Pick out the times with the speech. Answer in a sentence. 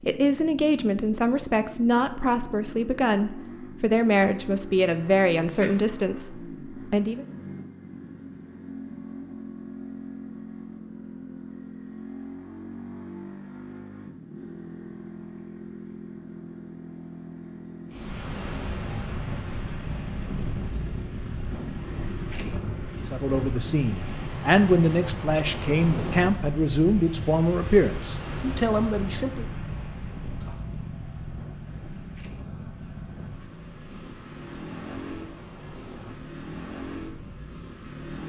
You can hear the speech from 0.1 to 7.2 s and from 23.1 to 29.4 s.